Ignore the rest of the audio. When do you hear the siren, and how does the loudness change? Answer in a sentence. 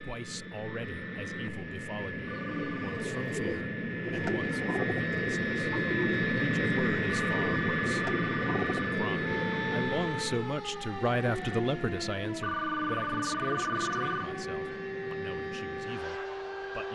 You can hear the siren from 9.2 to 16.8 s, at a steady volume.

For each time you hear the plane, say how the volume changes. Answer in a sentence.
You can hear the plane from 0.0 to 16.8 s, getting louder then quieter.